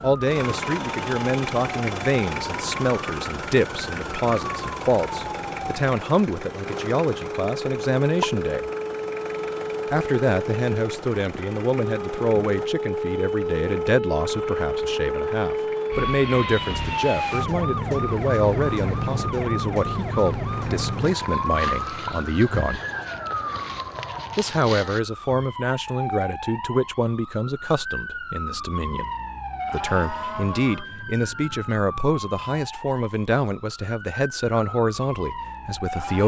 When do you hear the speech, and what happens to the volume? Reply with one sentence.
You can hear the speech from 0.0 to 8.7 s, at a steady volume; from 9.9 to 22.8 s, at a steady volume; from 24.4 to 29.1 s, getting quieter; and from 29.7 to 36.2 s, at a steady volume.